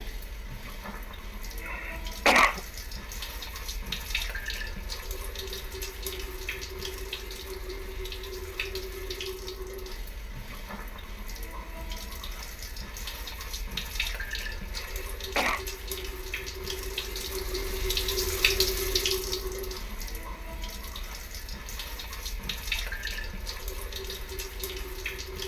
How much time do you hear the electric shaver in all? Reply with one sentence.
You can't hear the electric shaver here.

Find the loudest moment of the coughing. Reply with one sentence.
The loudest moment of the coughing is at 2 seconds.